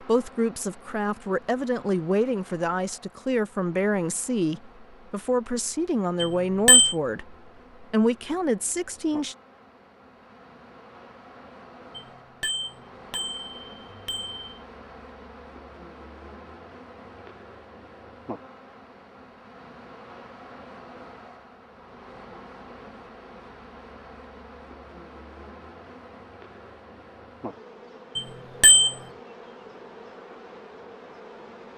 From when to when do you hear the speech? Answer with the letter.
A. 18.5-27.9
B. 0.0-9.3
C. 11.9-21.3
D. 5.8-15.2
B.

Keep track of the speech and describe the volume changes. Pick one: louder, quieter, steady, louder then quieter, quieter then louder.
steady.